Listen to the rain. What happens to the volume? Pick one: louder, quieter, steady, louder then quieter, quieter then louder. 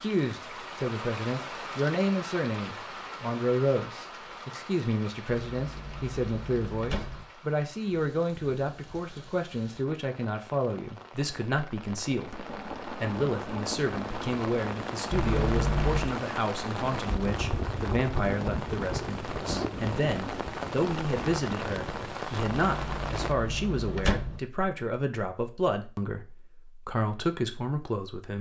quieter then louder.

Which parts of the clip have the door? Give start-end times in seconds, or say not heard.
5.5-7.2, 15.1-16.1, 22.6-24.4.